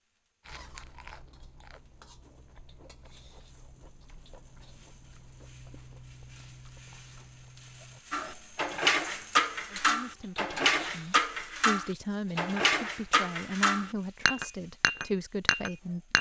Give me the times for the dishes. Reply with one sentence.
The dishes can be heard from 8.1 to 16.1 s.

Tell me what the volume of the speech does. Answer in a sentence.
The loudness of the speech goes up.